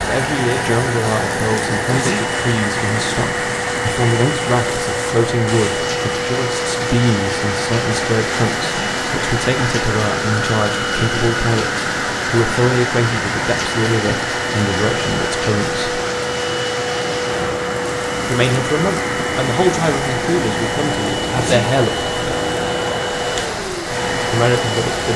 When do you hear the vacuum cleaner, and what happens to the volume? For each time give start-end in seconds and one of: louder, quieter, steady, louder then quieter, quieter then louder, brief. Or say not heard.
0.0-25.1 steady.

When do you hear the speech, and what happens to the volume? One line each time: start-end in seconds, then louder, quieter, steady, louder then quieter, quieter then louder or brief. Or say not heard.
0.1-16.0 steady
18.3-22.3 quieter then louder
24.3-25.1 brief.